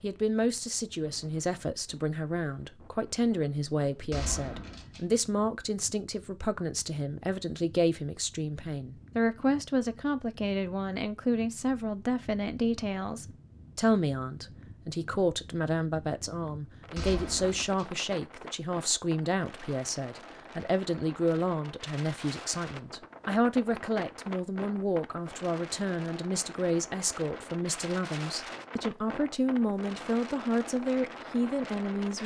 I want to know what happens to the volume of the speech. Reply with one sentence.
The loudness of the speech stays about the same.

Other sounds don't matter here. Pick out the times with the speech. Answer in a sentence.
The speech can be heard from 0.0 to 32.2 s.